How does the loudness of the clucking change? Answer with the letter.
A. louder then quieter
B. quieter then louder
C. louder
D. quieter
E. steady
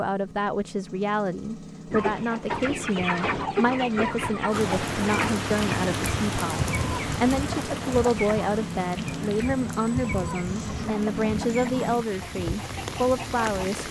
D.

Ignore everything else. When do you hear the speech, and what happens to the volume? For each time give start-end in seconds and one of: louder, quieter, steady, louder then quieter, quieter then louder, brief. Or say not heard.
0.0-13.8 steady.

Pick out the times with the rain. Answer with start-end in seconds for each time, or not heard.
4.5-13.8.